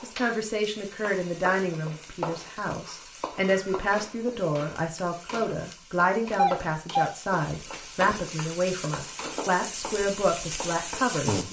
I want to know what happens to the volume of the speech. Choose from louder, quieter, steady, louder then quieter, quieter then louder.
steady.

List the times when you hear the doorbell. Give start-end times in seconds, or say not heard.
6.3-7.1.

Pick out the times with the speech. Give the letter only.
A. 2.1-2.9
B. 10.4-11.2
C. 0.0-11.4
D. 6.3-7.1
C.